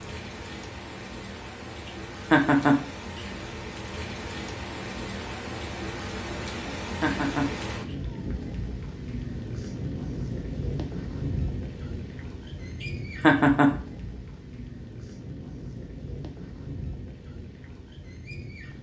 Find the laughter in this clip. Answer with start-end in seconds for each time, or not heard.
2.3-2.8, 7.0-7.5, 13.2-13.7.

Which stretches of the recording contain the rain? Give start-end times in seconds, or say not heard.
0.0-18.7.